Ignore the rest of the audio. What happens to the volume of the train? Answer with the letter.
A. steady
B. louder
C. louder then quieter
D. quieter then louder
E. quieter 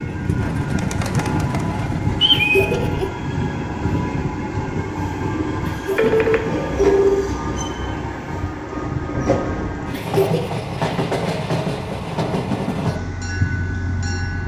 A.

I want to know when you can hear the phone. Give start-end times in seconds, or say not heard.
6.0-7.3.